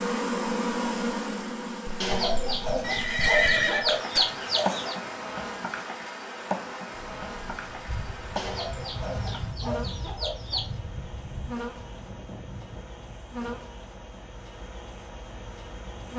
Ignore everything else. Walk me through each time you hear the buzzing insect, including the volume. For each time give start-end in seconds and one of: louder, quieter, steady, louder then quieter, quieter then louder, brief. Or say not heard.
0.0-16.1 quieter.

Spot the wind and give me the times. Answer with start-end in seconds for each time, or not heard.
6.9-16.1.